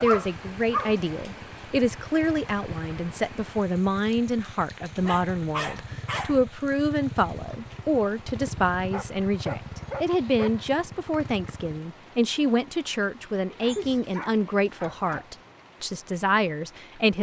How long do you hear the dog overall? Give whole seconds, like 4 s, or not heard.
6 s.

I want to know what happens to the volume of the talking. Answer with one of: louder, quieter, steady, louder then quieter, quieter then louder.
steady.